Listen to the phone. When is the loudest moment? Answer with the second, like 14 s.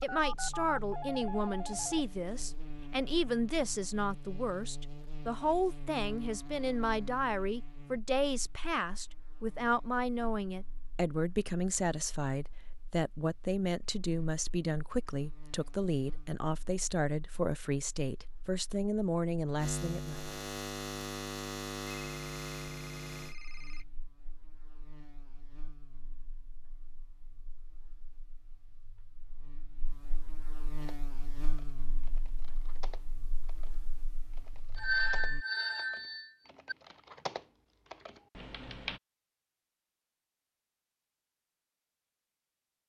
35 s.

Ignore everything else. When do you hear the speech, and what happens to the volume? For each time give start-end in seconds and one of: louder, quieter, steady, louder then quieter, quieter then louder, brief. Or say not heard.
0.0-20.2 steady.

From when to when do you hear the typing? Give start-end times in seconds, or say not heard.
30.8-39.0.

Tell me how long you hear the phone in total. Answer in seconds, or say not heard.
6 s.